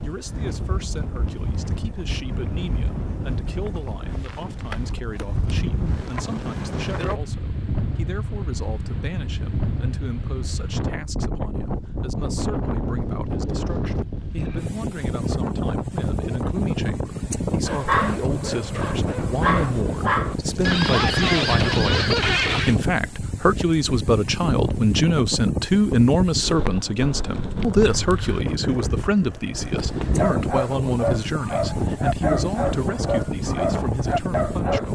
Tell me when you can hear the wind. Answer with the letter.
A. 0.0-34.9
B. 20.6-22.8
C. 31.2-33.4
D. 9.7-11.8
A.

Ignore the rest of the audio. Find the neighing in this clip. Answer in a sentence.
The neighing can be heard from 20.6 to 22.8 s.